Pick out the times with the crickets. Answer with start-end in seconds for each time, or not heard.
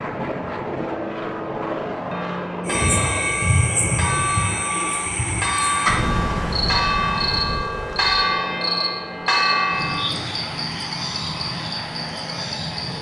2.6-12.9.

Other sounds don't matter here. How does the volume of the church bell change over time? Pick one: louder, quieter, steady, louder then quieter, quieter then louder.
louder.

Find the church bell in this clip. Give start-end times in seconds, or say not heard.
0.8-10.1.